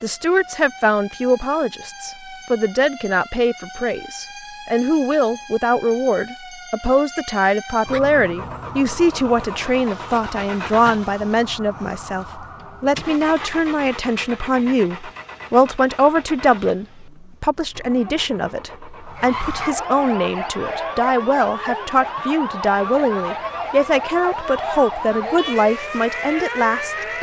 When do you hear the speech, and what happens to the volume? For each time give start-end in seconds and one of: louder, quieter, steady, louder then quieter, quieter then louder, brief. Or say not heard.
0.0-27.1 steady.